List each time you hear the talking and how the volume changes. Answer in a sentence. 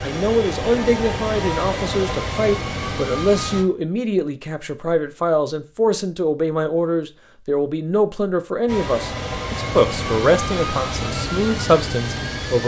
The talking can be heard from 0.0 to 12.6 s, at a steady volume.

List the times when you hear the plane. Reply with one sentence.
You can hear the plane from 0.0 to 3.6 s and from 8.7 to 12.6 s.